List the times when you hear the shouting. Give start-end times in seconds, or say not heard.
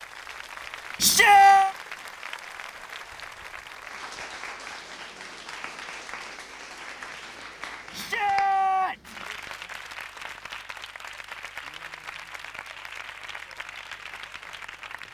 1.0-1.8, 7.9-9.2.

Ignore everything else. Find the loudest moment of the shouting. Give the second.
1 s.